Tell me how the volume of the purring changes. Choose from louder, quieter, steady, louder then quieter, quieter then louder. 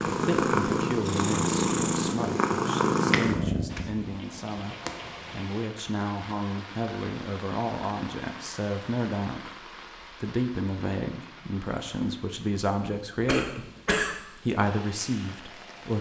quieter.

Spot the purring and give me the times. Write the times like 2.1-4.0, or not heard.
0.0-5.5.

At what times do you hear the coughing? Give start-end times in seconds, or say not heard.
13.2-14.2.